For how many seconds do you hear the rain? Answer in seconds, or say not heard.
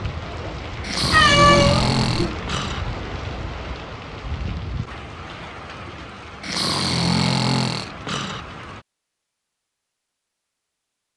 9 s.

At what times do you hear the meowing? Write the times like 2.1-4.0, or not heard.
1.1-2.4.